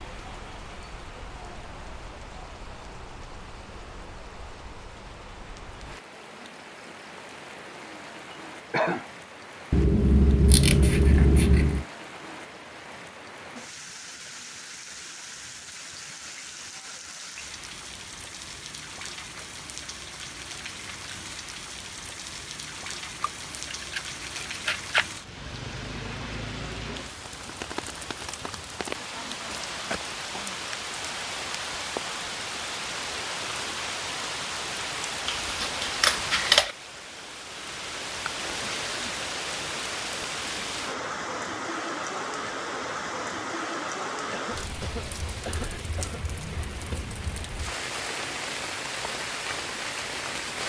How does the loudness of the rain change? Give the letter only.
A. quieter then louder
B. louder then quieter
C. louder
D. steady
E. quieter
C.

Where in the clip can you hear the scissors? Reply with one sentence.
You can hear the scissors from 9.7 to 11.8 s, from 23.2 to 25.1 s and from 35.2 to 36.8 s.